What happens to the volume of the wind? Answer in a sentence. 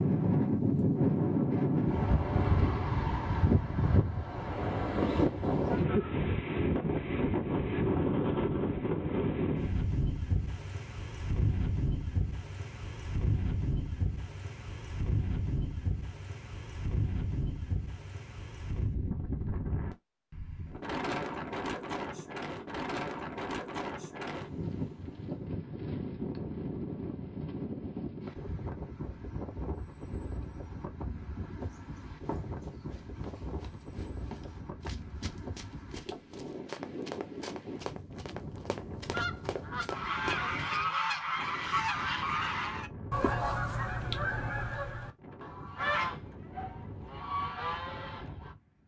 The volume of the wind goes down.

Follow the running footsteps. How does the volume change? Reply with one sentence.
The loudness of the running footsteps goes up.